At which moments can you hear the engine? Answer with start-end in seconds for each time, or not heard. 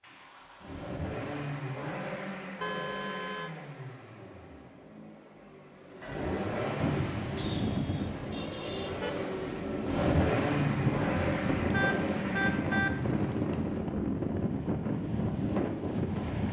0.0-13.8.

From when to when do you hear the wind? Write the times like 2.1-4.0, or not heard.
6.8-16.4.